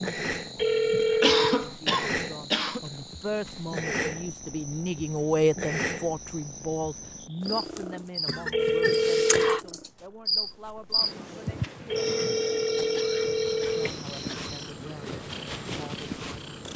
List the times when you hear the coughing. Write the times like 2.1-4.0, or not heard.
1.1-2.8, 8.2-9.4, 12.9-14.5.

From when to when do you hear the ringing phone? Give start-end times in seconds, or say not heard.
0.6-1.6, 8.5-9.6, 11.9-13.9.